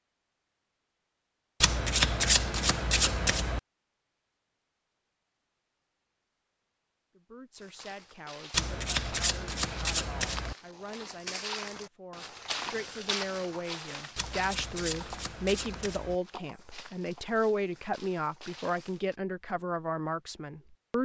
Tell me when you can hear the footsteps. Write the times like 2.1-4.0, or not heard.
7.5-19.1.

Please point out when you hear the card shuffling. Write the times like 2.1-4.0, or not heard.
1.6-3.6, 8.5-10.6, 14.2-16.1.